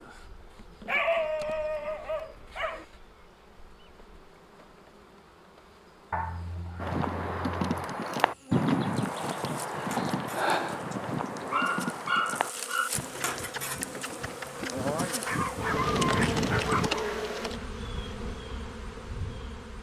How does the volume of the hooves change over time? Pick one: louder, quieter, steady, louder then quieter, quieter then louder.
quieter then louder.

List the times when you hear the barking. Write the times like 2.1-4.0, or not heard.
0.8-2.9, 6.1-7.8, 10.9-12.9, 15.2-17.1.